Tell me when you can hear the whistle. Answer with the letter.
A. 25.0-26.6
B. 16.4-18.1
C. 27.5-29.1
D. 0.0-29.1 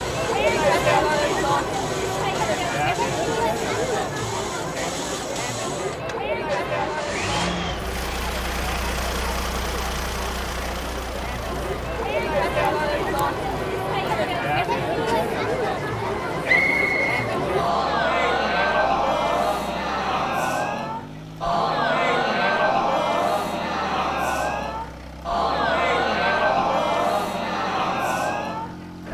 B.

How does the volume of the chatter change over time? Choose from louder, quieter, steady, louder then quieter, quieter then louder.
quieter then louder.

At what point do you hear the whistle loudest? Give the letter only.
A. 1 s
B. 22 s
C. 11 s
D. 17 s
D.